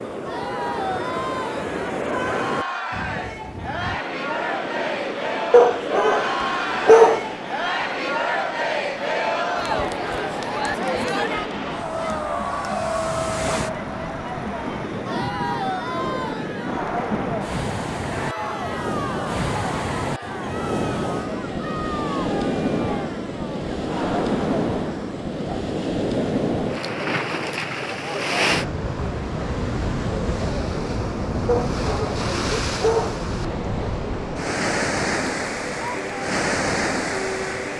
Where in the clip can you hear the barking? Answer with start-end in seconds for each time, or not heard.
5.5-7.3, 31.4-33.2.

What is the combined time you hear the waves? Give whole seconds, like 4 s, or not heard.
38 s.